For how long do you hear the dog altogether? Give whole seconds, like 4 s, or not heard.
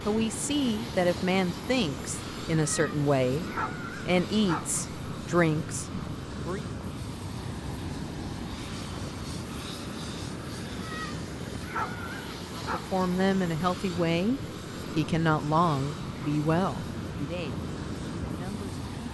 4 s.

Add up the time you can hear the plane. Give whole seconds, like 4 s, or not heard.
19 s.